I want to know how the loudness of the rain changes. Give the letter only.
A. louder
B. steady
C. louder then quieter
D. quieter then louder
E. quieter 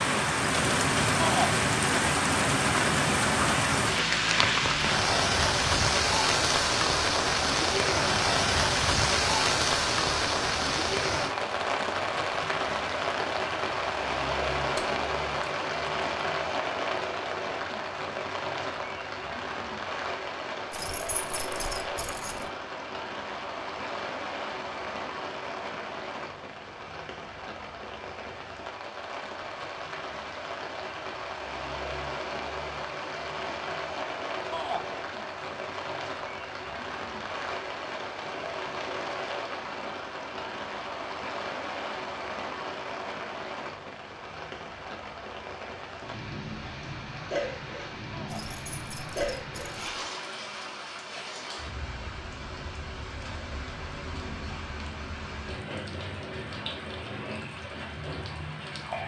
E.